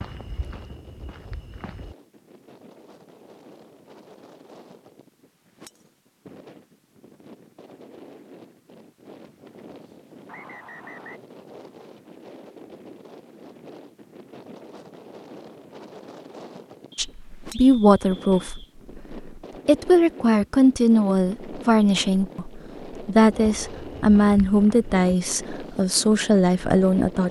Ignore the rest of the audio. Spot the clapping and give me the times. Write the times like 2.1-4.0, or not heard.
not heard.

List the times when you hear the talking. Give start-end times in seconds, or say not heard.
16.9-27.2.